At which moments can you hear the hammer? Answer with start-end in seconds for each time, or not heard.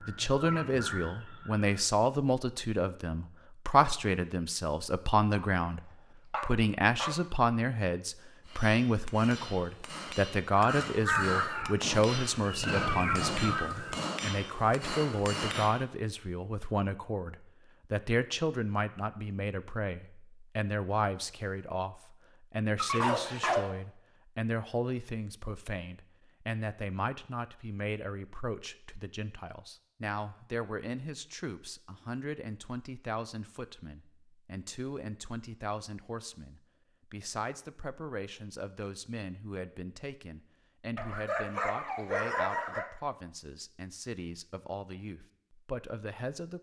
8.4-15.8.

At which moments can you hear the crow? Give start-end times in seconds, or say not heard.
0.0-1.8, 10.7-14.0.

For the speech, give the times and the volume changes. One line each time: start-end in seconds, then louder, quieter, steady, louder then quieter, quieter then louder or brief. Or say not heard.
0.0-46.5 quieter.